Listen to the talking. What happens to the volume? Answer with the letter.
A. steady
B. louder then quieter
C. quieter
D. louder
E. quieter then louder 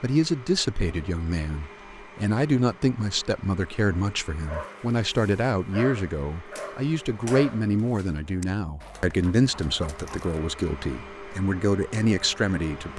A.